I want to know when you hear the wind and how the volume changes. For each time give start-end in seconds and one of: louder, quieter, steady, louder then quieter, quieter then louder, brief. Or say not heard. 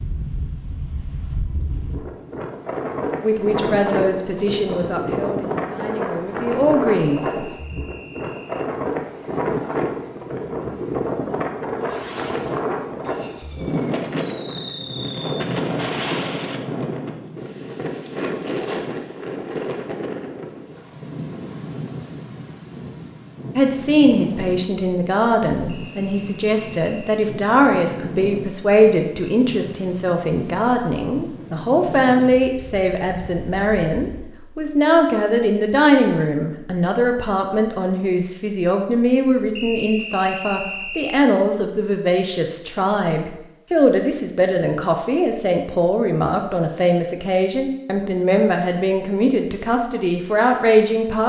0.0-34.2 quieter.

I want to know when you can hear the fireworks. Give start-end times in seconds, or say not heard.
11.8-16.3.